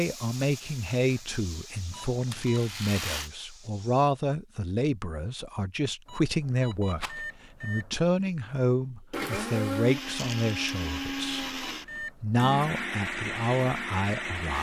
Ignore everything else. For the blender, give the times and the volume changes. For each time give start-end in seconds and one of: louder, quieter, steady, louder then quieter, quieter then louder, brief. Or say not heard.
8.2-14.5 steady.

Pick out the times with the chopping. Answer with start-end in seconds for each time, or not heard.
not heard.